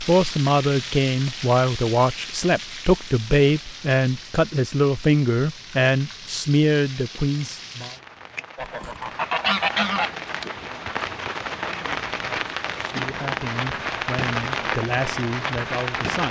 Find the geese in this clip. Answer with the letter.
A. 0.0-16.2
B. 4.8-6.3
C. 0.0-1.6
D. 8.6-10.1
D.